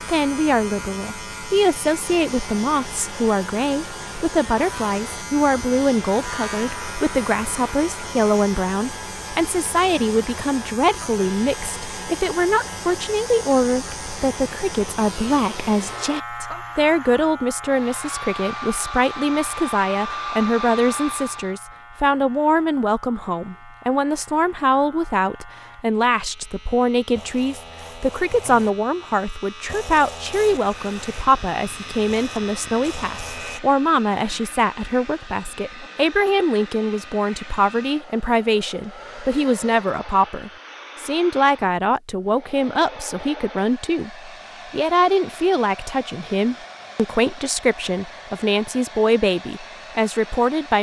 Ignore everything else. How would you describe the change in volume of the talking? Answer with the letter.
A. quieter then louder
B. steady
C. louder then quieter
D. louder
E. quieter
B.